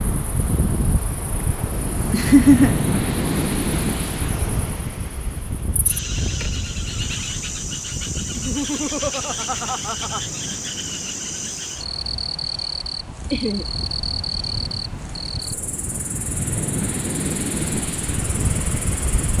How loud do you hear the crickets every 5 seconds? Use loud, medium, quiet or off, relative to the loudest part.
medium, loud, loud, medium.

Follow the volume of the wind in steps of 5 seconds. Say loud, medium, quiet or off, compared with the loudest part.
loud, medium, quiet, loud.